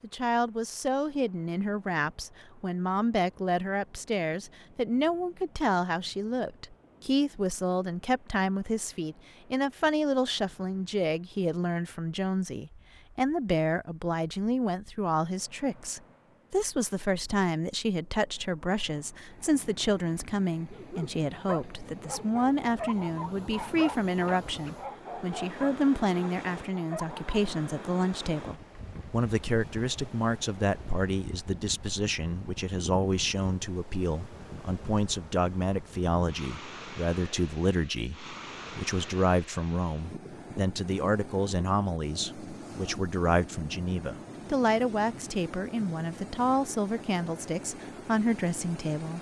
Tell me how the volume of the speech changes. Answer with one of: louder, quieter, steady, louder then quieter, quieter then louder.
steady.